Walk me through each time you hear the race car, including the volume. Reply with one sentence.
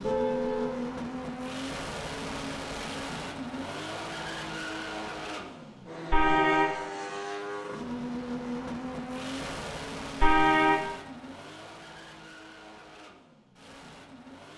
You can hear the race car from 0.0 to 14.5 s, getting quieter.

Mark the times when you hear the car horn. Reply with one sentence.
You can hear the car horn from 0.0 to 0.8 s, from 6.1 to 6.8 s and from 10.2 to 10.8 s.